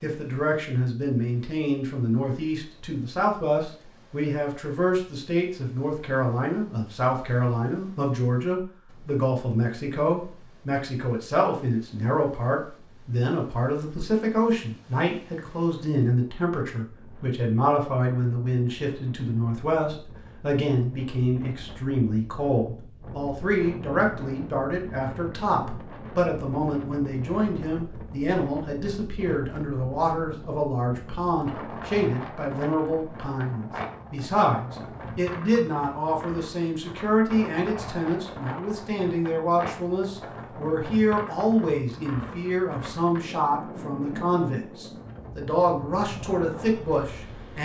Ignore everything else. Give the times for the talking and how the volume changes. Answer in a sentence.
The talking can be heard from 0.0 to 47.6 s, at a steady volume.